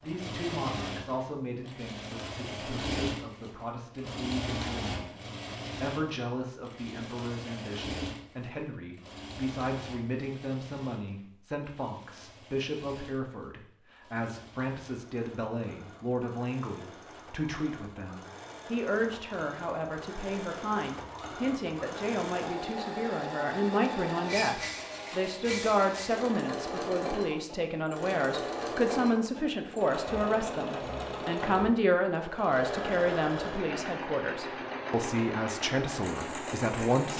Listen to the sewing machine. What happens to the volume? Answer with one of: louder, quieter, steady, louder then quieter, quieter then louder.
quieter then louder.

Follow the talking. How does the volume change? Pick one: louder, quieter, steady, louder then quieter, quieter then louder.
louder.